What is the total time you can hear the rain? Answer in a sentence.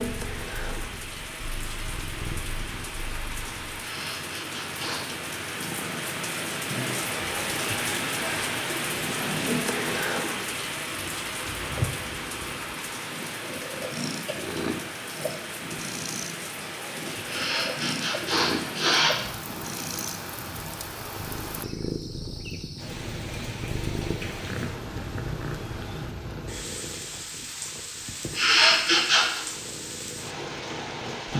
You can hear the rain for 31 seconds altogether.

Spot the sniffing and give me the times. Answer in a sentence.
You can hear the sniffing from 3.8 to 5.0 s, from 17.2 to 19.1 s and from 28.4 to 29.4 s.